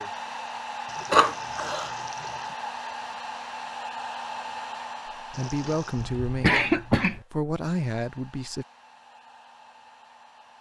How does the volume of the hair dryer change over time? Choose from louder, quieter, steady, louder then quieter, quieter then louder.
quieter.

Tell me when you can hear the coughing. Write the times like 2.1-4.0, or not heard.
1.1-1.9, 6.0-7.2.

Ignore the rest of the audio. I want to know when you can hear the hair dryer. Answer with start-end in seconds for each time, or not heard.
0.0-10.5.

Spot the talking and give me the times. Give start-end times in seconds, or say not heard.
5.2-8.7.